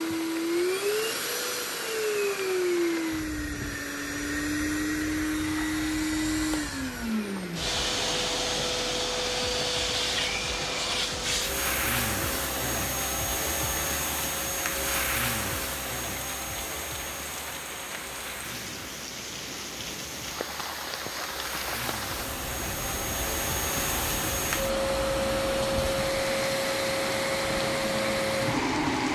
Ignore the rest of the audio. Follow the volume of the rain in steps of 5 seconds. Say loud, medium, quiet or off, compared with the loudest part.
medium, medium, medium, medium, loud, loud.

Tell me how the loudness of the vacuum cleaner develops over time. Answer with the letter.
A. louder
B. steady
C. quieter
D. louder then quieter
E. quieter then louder
E.